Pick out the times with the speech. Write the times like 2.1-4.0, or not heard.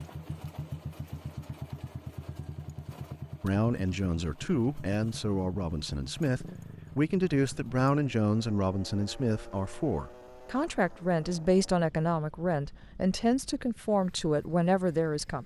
3.4-15.4.